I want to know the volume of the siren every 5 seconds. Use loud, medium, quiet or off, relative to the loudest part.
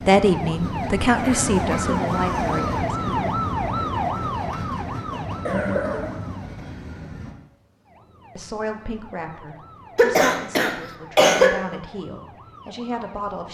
loud, quiet, quiet.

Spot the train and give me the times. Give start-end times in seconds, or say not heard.
0.0-7.3.